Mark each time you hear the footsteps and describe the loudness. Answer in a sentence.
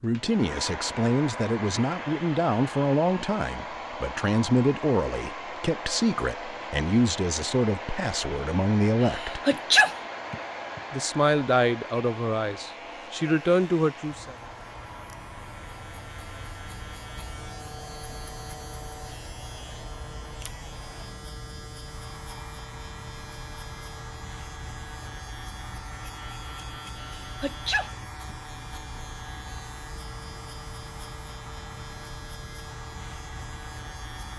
You can't hear the footsteps here.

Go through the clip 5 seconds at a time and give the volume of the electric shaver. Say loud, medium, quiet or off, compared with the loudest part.
off, off, medium, loud, loud, loud, loud.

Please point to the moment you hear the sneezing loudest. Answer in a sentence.
The loudest moment of the sneezing is at 10 seconds.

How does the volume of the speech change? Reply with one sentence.
The loudness of the speech stays about the same.